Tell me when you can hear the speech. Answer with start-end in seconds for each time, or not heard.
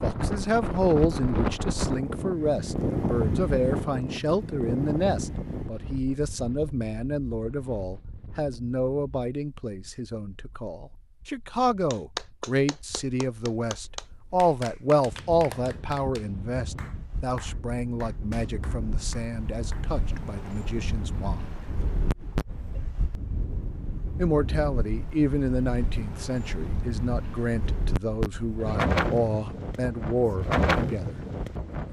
0.0-21.6, 24.1-31.2.